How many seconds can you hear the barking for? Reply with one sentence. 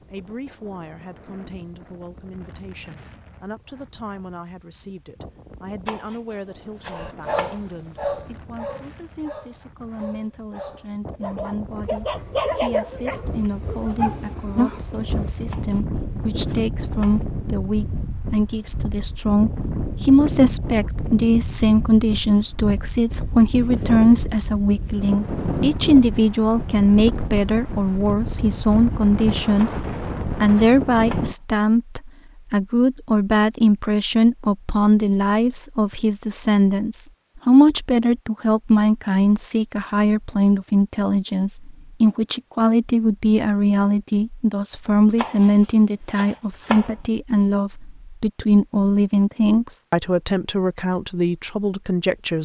The barking can be heard for 8 seconds in total.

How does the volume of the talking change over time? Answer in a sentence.
The loudness of the talking goes up.